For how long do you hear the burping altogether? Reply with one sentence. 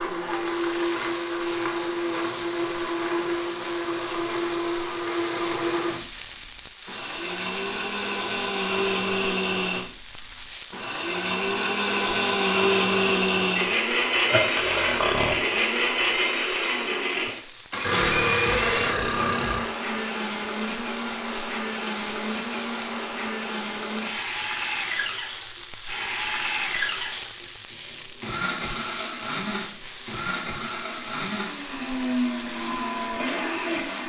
You can hear the burping for 3 seconds altogether.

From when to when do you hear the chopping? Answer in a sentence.
The chopping can't be heard in this clip.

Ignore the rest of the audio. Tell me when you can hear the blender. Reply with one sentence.
You can hear the blender from 0.0 to 34.0 s.